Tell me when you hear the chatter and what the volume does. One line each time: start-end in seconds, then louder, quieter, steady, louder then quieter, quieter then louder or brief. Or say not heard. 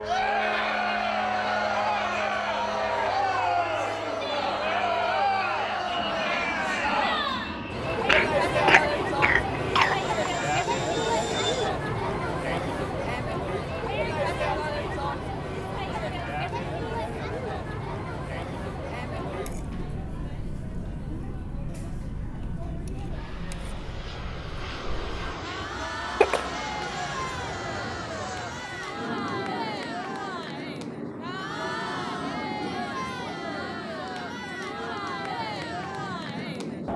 0.0-36.9 quieter.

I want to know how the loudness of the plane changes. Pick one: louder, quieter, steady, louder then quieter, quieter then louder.
steady.